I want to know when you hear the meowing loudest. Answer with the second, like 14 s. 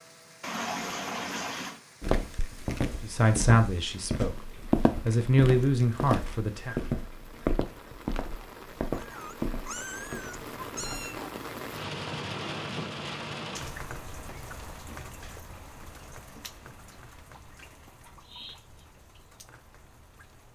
1 s.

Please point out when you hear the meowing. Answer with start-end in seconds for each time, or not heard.
0.4-1.8, 8.9-11.2, 18.1-18.9.